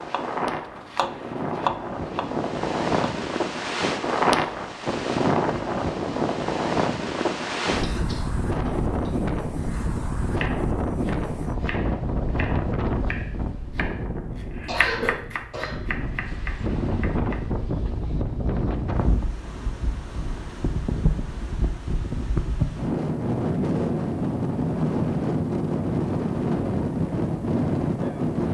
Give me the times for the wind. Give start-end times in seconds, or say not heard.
0.0-28.4.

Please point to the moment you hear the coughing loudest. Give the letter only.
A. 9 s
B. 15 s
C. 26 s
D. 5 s
B.